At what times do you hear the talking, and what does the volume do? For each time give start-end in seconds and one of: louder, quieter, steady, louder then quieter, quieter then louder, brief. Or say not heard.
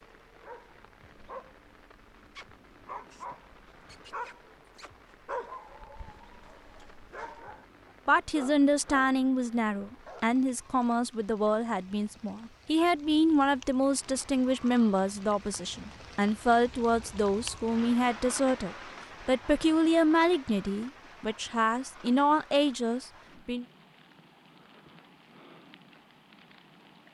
8.1-23.6 steady.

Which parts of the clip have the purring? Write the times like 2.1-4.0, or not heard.
not heard.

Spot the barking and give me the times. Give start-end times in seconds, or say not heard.
0.1-10.2.